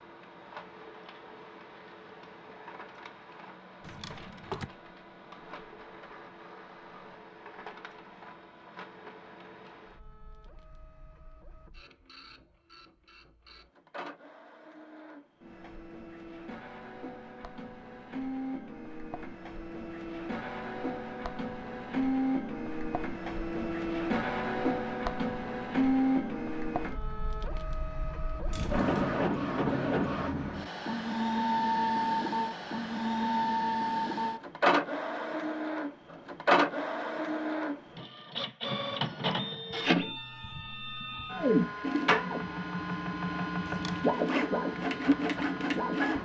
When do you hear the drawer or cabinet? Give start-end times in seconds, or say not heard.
3.8-4.7, 28.4-29.1, 43.6-44.2.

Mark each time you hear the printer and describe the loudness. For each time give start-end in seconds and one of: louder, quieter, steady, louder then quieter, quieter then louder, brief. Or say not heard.
0.0-46.2 louder.